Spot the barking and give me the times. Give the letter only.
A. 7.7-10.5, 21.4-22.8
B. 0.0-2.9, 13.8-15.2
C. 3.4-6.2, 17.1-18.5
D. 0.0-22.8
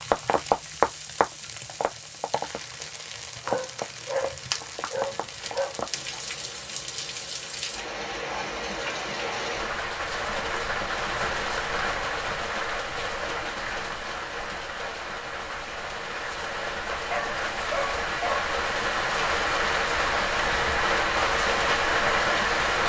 C.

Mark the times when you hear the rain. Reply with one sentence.
The rain can be heard from 0.0 to 22.8 s.